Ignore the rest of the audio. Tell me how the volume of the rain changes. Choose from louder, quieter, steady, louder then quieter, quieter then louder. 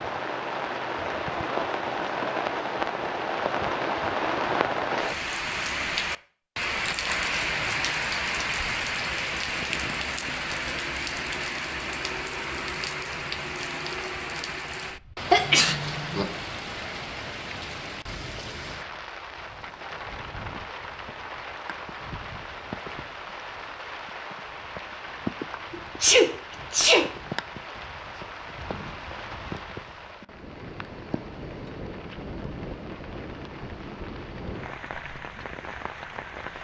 quieter.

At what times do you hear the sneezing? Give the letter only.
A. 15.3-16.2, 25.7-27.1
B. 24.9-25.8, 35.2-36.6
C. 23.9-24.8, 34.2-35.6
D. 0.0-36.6
A.